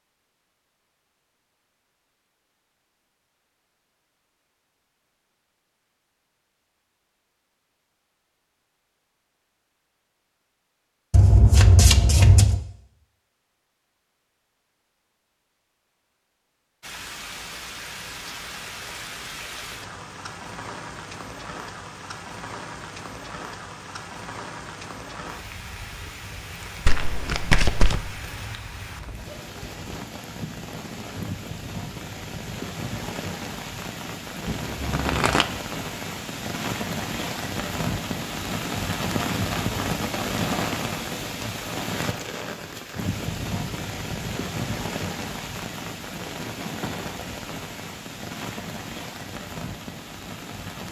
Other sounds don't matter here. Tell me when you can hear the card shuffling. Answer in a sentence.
The card shuffling can be heard from 11.1 to 12.7 s, from 26.9 to 28.0 s and from 34.5 to 35.5 s.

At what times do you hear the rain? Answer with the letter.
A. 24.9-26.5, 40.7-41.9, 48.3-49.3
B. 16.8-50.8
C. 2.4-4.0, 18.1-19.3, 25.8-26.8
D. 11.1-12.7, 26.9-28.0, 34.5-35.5
B.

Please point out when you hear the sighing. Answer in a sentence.
The sighing can't be heard in this clip.